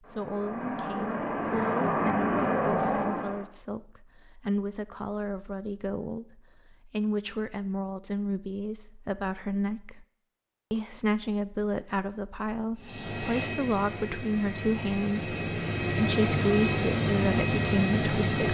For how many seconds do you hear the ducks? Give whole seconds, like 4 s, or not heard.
not heard.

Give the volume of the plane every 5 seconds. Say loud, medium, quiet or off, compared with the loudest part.
loud, off, medium, loud.